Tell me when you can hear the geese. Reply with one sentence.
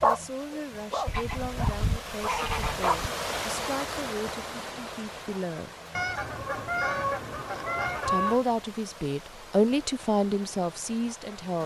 The geese can be heard from 1.1 to 3.0 s and from 6.0 to 8.4 s.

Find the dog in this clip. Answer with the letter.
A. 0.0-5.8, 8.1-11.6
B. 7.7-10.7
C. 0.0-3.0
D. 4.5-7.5
C.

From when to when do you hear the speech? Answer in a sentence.
You can hear the speech from 0.0 to 5.8 s and from 8.1 to 11.6 s.